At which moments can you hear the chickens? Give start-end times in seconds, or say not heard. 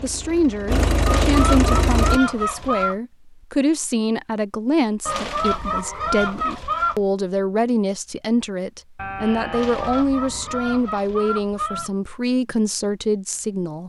1.1-3.0, 5.0-7.0, 9.5-11.9.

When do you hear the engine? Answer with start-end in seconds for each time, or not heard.
0.0-2.2.